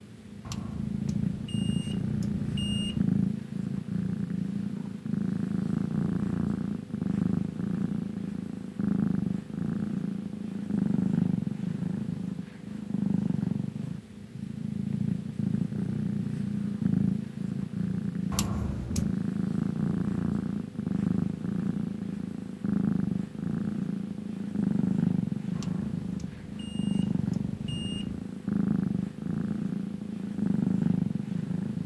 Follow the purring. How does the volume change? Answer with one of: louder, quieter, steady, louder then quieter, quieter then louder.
steady.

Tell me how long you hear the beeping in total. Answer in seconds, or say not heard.
6 s.